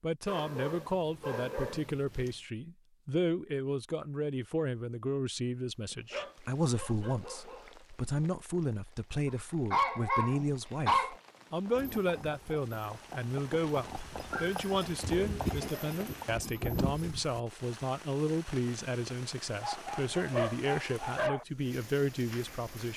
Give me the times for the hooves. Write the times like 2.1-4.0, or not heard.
11.7-17.1.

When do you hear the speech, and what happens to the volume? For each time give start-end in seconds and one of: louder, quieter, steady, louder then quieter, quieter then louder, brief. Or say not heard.
0.0-22.9 steady.